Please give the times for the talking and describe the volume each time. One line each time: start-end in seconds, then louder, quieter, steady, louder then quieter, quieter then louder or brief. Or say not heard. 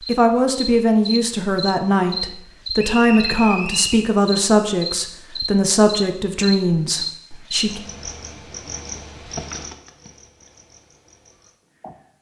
0.1-7.8 steady.